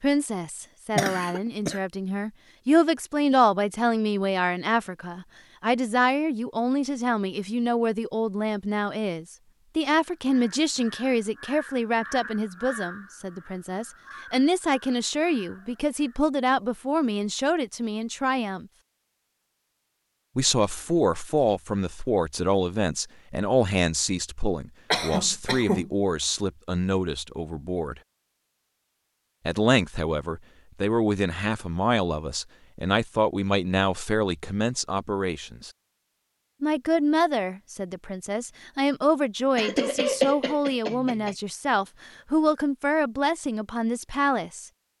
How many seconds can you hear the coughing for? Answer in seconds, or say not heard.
4 s.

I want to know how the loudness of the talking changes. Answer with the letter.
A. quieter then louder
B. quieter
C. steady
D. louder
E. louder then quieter
C.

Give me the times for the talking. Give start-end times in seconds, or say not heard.
0.0-18.6, 20.4-28.0, 29.4-35.7, 36.6-44.7.